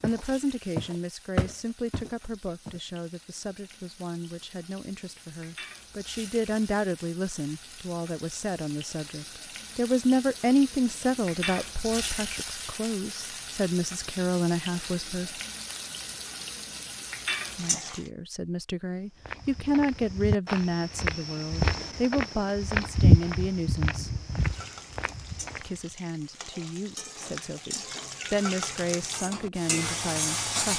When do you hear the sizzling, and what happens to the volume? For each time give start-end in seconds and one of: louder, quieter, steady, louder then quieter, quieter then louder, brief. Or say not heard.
0.0-18.1 louder
24.4-30.7 louder.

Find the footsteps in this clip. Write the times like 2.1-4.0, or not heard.
0.0-2.8, 19.2-25.8.